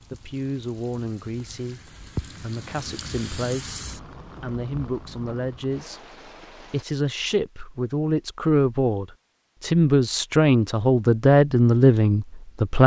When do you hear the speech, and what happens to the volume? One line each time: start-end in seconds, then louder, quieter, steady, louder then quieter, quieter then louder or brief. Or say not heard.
0.1-12.8 louder.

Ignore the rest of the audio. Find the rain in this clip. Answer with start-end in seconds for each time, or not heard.
0.0-6.8.